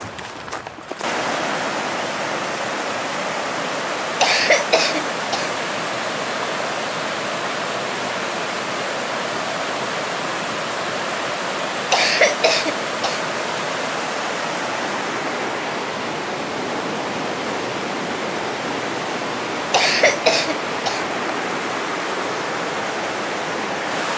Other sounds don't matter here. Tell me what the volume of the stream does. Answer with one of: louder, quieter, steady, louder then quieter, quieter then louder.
steady.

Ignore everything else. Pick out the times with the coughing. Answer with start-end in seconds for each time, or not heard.
4.2-5.5, 11.9-13.2, 19.7-21.1.